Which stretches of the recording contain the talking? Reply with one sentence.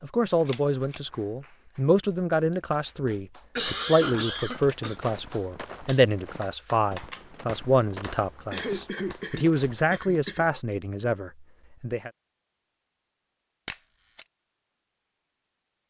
You can hear the talking from 0.0 to 12.1 s.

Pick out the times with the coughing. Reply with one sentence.
The coughing can be heard from 3.5 to 5.0 s and from 8.5 to 10.4 s.